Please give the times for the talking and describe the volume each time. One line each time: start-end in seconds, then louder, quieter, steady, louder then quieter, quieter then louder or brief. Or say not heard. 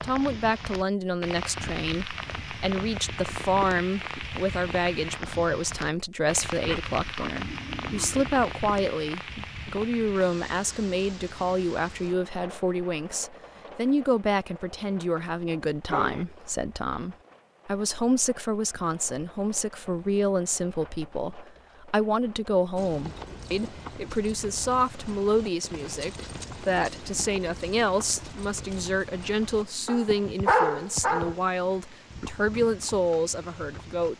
0.0-34.1 steady.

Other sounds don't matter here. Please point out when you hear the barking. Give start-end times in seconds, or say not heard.
6.7-8.3, 15.8-16.2, 29.9-31.4.